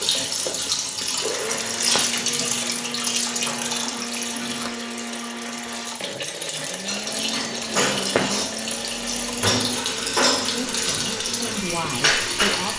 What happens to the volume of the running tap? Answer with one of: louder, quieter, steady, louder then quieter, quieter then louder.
quieter then louder.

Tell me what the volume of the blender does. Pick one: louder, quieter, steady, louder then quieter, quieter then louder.
steady.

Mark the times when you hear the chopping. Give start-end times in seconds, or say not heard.
not heard.